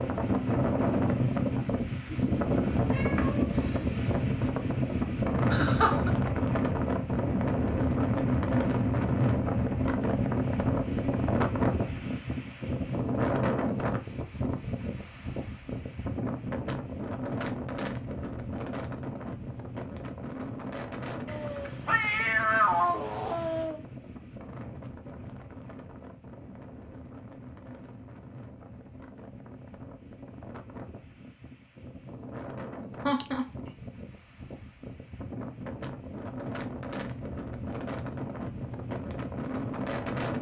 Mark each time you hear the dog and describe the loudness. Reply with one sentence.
You can't hear the dog here.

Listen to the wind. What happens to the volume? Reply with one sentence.
The loudness of the wind goes down, then up.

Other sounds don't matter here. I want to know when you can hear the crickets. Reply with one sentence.
The crickets can't be heard in this clip.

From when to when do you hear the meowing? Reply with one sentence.
You can hear the meowing from 2.0 to 4.0 s and from 21.2 to 23.8 s.